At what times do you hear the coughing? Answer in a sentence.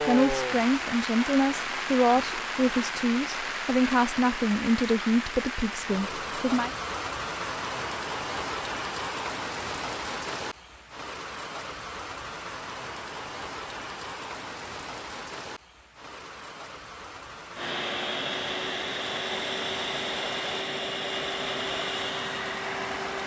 You can't hear the coughing here.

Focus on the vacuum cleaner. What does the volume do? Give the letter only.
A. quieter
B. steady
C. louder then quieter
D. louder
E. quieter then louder
B.